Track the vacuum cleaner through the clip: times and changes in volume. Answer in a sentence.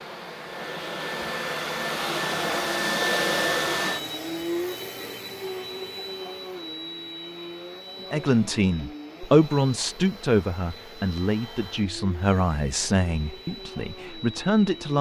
The vacuum cleaner can be heard from 0.0 to 14.9 s, getting quieter.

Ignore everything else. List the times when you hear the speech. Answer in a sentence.
The speech can be heard from 8.1 to 14.9 s.